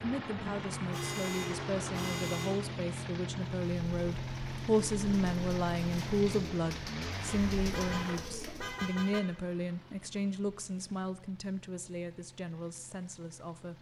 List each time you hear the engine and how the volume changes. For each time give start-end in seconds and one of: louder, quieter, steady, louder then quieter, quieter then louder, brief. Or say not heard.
0.0-13.7 quieter.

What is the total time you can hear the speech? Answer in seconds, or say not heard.
14 s.